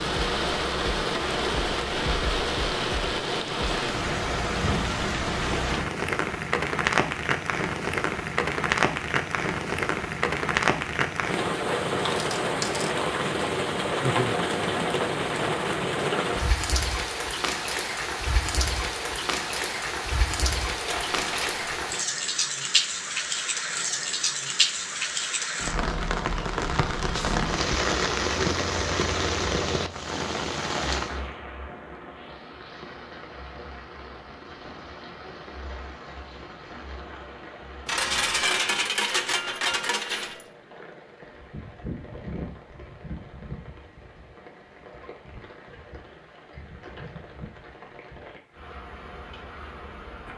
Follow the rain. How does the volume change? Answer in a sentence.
The loudness of the rain goes down.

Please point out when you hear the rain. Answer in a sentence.
You can hear the rain from 0.0 to 50.3 s.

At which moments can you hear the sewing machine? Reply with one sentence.
You can't hear the sewing machine here.